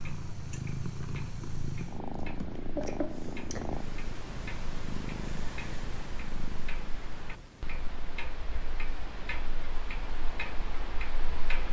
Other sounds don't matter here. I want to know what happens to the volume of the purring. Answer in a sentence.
The volume of the purring goes down.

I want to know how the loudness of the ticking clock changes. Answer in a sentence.
The loudness of the ticking clock goes up.